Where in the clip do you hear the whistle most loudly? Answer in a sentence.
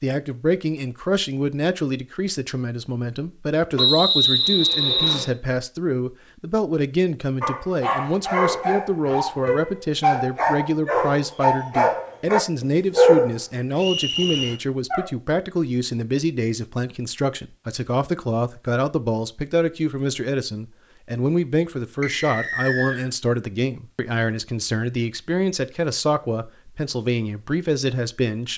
The loudest moment of the whistle is at 4 seconds.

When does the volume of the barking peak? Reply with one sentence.
The loudest moment of the barking is at 13 seconds.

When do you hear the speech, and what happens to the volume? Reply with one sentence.
The speech can be heard from 0.0 to 28.5 s, at a steady volume.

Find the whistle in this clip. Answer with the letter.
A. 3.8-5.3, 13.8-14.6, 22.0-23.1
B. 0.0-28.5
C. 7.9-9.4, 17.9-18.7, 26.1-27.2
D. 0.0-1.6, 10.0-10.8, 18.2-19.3
A.